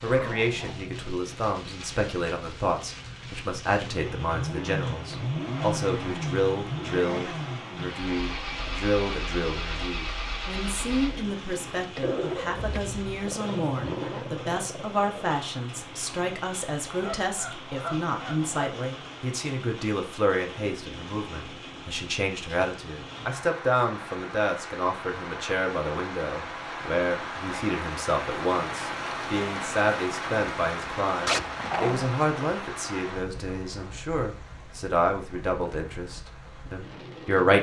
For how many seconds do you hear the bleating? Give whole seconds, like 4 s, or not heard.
not heard.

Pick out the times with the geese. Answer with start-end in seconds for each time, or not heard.
16.9-18.7.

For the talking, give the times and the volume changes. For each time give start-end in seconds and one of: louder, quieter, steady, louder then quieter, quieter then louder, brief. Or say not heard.
0.0-37.5 steady.